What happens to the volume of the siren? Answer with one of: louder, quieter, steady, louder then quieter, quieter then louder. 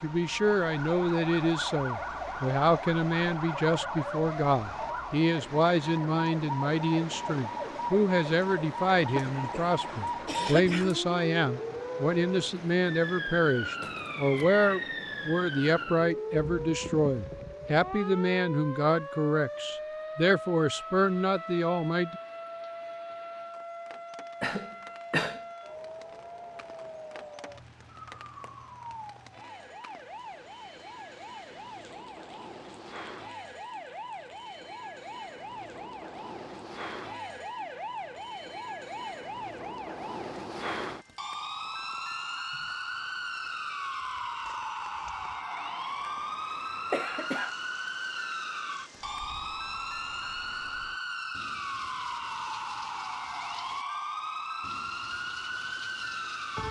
quieter then louder.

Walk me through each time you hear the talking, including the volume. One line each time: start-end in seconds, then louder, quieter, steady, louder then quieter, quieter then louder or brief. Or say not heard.
0.0-22.1 steady.